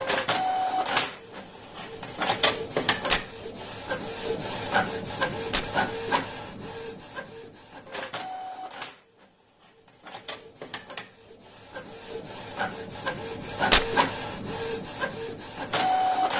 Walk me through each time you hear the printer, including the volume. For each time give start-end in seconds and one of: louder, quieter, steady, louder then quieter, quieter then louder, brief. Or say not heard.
0.0-16.3 quieter then louder.